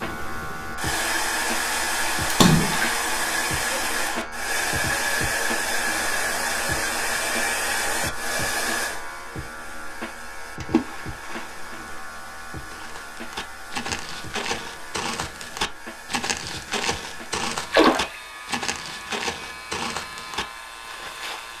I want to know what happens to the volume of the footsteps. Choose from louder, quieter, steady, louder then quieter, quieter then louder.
steady.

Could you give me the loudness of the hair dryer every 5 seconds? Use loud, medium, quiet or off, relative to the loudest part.
loud, loud, quiet, quiet, quiet.